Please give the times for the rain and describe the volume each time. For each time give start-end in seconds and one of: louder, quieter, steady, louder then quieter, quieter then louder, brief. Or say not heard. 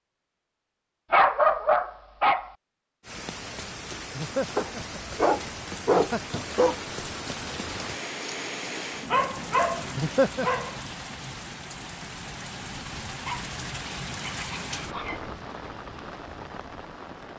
3.0-17.3 steady.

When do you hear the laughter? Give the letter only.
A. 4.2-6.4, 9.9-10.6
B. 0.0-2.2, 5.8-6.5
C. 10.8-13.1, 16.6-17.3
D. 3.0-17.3
A.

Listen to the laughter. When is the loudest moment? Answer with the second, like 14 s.
10 s.